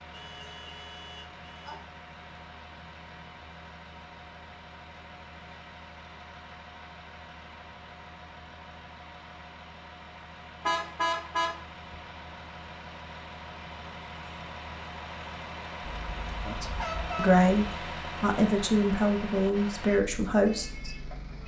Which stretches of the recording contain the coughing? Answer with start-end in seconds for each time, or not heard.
not heard.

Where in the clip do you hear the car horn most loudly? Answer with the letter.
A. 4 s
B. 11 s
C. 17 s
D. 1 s
B.